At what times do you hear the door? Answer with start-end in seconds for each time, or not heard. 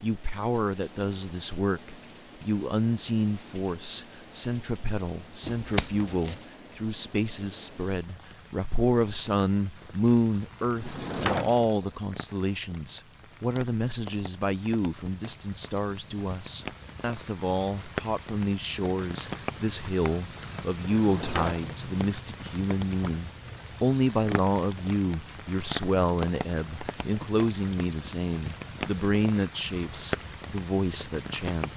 10.8-11.9, 20.9-21.9.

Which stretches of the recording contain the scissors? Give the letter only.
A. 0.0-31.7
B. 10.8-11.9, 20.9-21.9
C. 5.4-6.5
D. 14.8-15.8
C.